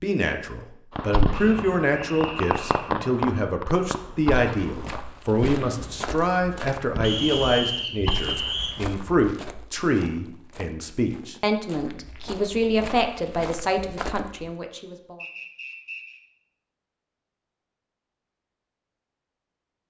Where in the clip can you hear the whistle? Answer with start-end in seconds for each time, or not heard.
1.3-3.0, 7.0-8.8, 15.2-16.2.